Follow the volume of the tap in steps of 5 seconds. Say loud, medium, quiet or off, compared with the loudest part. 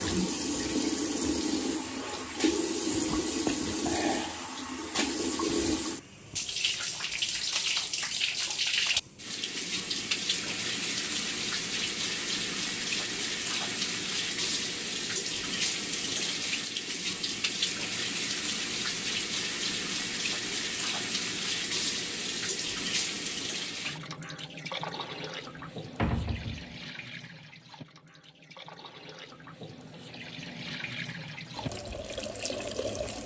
loud, loud, loud, loud, loud, quiet, medium.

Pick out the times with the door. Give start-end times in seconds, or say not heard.
25.9-26.8.